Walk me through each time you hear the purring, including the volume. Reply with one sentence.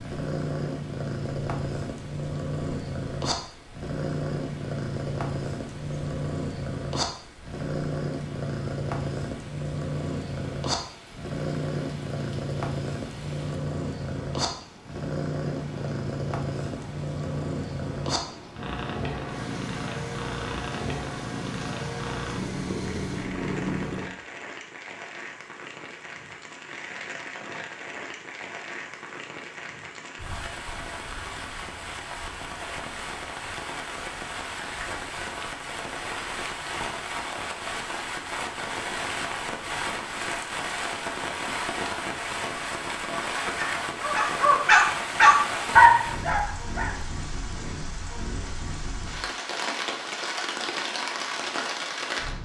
You can hear the purring from 0.0 to 24.1 s, at a steady volume.